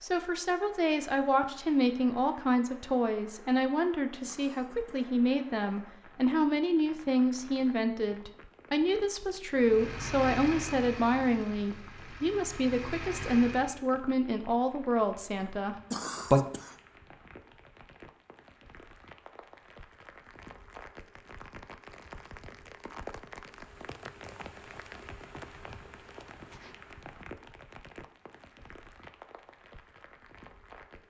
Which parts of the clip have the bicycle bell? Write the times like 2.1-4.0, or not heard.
not heard.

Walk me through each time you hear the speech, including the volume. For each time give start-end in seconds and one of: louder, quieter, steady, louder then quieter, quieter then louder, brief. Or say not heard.
0.0-16.4 steady.